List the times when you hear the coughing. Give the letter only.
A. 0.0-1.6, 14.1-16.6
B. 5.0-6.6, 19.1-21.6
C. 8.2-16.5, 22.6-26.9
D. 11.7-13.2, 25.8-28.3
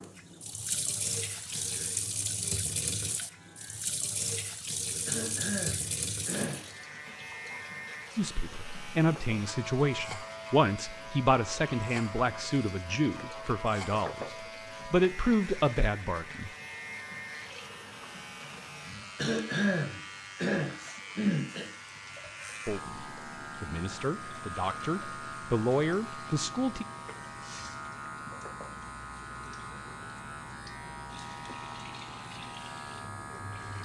B.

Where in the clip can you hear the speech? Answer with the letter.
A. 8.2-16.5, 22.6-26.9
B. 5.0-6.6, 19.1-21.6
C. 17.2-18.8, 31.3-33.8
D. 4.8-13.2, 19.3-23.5
A.